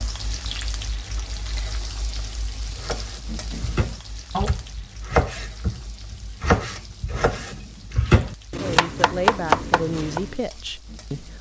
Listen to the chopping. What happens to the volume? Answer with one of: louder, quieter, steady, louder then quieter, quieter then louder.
louder.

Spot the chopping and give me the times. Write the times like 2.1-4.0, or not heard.
2.6-10.3.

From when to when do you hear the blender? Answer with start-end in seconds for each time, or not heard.
not heard.